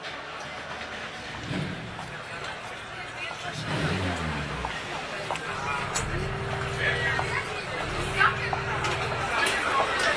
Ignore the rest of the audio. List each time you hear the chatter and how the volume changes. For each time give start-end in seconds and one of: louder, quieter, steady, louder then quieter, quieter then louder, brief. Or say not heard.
0.0-10.1 louder.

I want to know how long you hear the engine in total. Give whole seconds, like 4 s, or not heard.
10 s.